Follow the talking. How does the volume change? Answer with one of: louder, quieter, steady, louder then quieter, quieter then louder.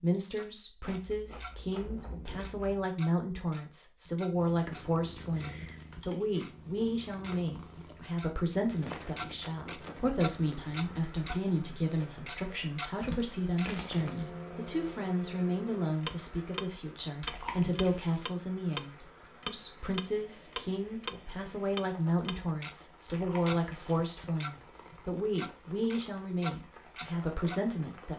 steady.